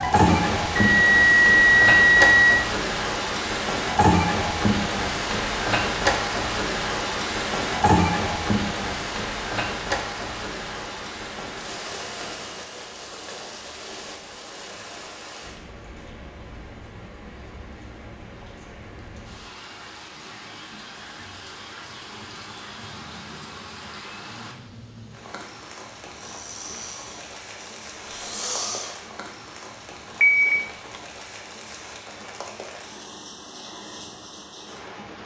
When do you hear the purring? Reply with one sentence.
You can't hear the purring here.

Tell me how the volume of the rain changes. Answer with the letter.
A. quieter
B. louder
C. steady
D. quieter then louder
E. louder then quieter
A.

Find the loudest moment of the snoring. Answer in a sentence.
The loudest moment of the snoring is at 29 seconds.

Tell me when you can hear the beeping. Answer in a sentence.
You can hear the beeping from 0.2 to 2.6 s and from 30.2 to 31.0 s.